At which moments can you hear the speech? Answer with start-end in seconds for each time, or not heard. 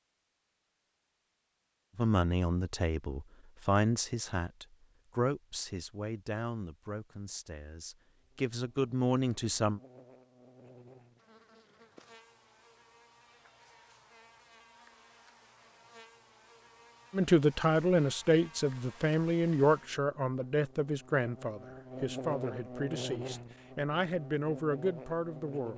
1.9-9.8, 17.1-25.7.